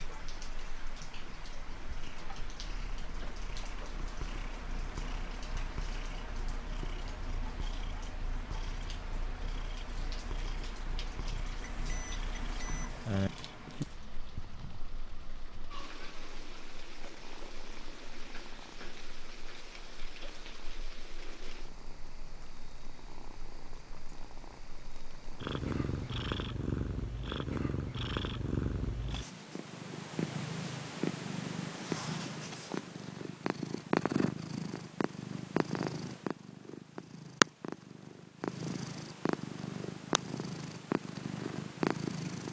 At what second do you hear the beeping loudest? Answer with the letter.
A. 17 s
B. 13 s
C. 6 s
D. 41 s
B.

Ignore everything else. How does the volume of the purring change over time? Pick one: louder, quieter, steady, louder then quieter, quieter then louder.
quieter then louder.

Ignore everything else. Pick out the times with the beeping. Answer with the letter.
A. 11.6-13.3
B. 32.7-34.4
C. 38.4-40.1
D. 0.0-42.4
A.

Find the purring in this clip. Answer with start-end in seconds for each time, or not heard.
0.0-42.4.